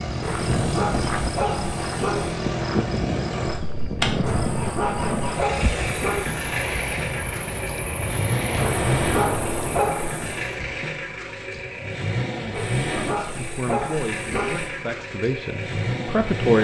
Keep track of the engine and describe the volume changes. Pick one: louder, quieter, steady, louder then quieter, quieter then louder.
steady.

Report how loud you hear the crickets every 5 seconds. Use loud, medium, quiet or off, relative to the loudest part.
loud, loud, off, off.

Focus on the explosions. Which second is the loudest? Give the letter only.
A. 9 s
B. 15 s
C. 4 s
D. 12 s
A.